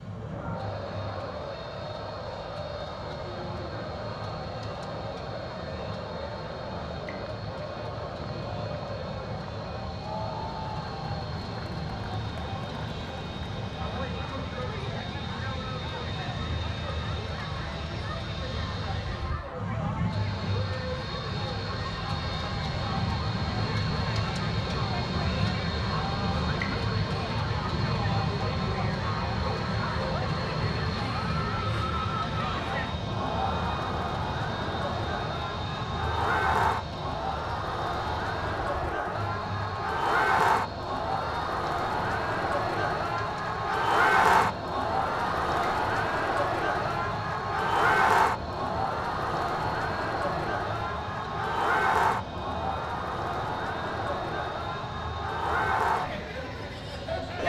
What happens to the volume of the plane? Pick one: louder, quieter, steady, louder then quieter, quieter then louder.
louder then quieter.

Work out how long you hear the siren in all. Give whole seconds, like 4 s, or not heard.
not heard.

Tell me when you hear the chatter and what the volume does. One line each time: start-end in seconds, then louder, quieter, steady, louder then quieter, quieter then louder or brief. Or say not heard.
0.1-57.4 louder.